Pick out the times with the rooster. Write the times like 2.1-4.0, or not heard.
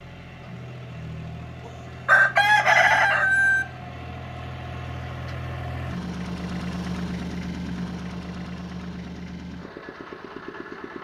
2.0-3.6.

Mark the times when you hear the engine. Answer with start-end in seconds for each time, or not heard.
0.0-10.9.